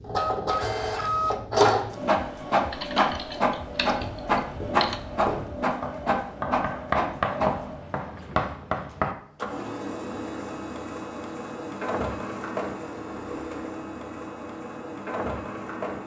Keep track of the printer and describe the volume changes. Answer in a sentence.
The volume of the printer goes down.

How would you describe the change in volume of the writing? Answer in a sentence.
The volume of the writing goes up.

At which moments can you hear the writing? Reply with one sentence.
The writing can be heard from 3.9 to 9.2 s.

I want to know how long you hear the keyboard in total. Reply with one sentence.
You can hear the keyboard for 2 seconds altogether.